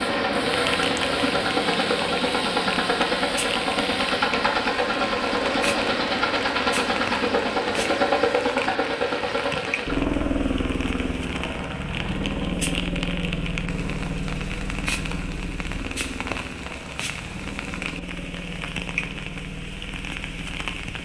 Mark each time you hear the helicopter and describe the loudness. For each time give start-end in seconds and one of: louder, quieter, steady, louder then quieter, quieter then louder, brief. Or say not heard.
0.0-20.9 quieter.